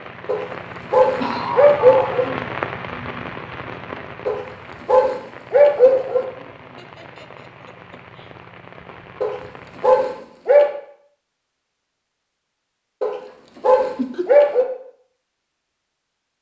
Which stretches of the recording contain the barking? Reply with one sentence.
The barking can be heard from 0.2 to 2.3 s, from 4.2 to 6.2 s, from 9.2 to 10.7 s and from 13.0 to 14.7 s.